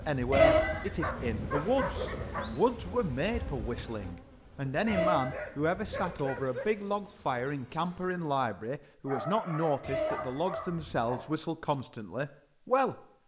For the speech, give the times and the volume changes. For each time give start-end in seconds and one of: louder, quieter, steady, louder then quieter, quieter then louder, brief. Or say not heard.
0.0-13.0 steady.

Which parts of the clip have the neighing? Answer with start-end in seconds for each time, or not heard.
0.3-2.5, 4.8-6.4, 9.8-11.2.